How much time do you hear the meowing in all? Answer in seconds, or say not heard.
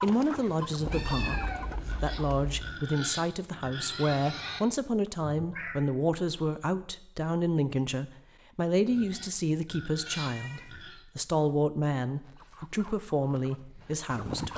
3 s.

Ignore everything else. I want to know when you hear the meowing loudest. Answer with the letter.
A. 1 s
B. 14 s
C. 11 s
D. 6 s
A.